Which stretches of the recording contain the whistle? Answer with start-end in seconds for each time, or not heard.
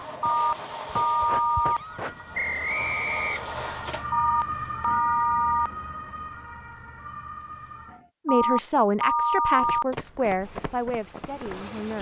2.3-3.8.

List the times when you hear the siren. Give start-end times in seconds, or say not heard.
1.6-8.1.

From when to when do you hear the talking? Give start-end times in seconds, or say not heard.
8.2-11.9.